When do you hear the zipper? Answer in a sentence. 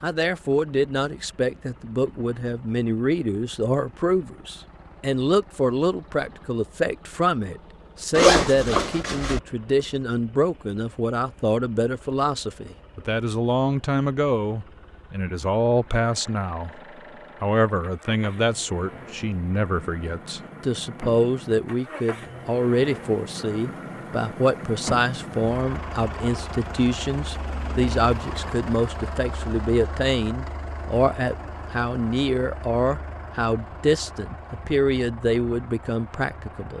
The zipper can be heard from 8.2 to 9.4 s.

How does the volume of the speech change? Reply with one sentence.
The loudness of the speech stays about the same.